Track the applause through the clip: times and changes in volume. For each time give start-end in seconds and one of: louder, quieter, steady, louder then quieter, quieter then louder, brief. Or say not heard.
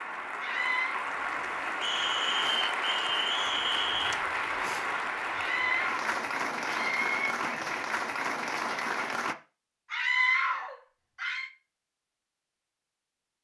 0.0-9.3 steady.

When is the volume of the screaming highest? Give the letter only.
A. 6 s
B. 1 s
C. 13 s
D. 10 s
D.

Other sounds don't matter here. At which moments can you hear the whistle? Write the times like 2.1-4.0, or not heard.
1.8-4.2.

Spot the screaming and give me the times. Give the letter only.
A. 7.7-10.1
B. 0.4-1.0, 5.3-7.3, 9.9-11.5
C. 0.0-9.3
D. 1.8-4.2
B.